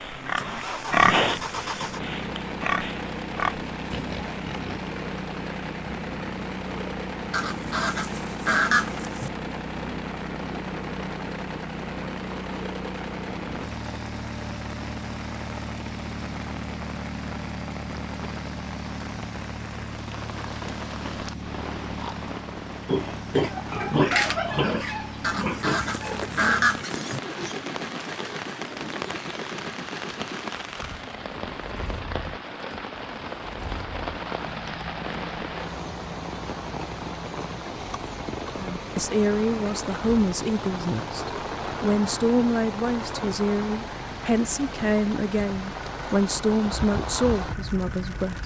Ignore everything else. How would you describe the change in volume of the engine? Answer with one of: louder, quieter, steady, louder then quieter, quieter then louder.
quieter.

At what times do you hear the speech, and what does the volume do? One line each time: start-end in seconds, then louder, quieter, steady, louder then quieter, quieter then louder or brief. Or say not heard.
38.5-48.4 steady.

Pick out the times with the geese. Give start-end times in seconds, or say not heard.
7.3-9.3, 25.2-27.2.